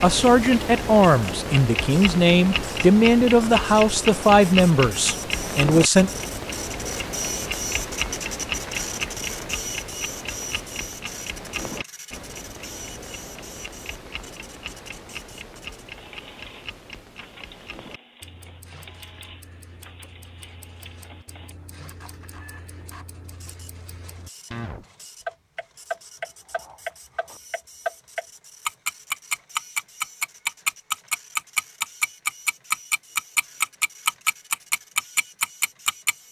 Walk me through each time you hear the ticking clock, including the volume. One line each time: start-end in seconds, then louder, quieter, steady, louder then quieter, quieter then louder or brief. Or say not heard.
0.0-36.2 quieter then louder.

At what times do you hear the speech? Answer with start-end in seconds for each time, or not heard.
0.0-6.1.